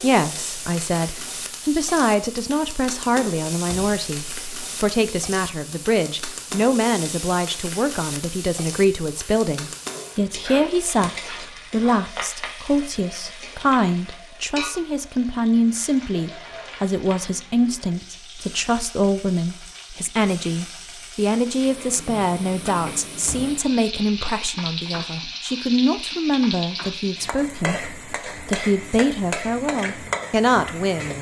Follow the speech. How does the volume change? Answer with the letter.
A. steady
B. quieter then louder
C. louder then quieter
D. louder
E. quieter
A.